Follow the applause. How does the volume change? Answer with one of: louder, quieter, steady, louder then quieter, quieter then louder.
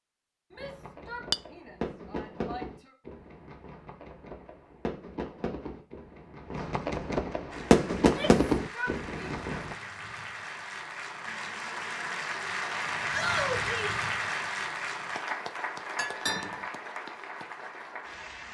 louder then quieter.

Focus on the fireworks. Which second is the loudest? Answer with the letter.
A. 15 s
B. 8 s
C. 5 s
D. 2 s
B.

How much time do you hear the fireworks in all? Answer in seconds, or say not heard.
9 s.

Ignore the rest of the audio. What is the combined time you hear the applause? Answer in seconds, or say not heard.
11 s.